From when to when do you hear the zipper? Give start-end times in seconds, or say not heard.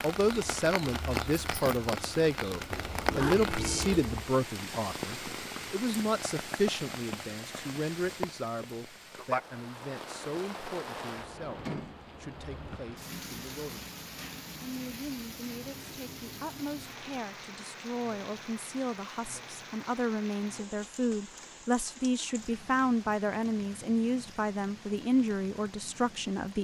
2.7-4.1.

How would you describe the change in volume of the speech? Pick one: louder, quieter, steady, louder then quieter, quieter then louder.
quieter then louder.